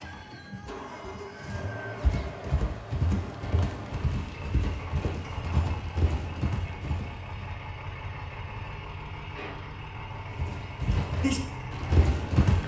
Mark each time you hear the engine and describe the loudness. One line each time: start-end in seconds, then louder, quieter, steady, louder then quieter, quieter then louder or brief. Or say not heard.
0.0-12.6 steady.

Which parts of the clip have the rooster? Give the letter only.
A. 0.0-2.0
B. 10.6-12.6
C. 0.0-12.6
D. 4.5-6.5
A.